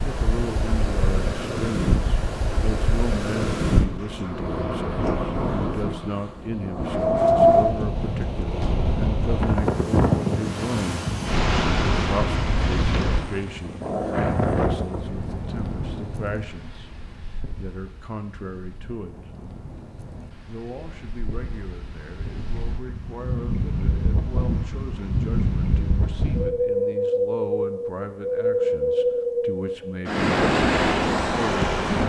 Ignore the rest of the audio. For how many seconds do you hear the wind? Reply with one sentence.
The wind can be heard for 32 seconds in total.